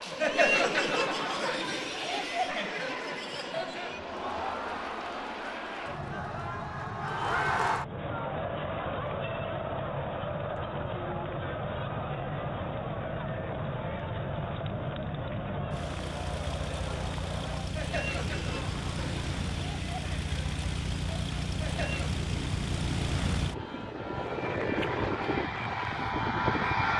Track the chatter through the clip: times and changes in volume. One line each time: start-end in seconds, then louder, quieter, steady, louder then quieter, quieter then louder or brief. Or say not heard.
0.0-22.2 quieter.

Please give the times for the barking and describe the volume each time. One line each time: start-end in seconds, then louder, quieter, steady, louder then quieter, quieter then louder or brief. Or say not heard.
not heard.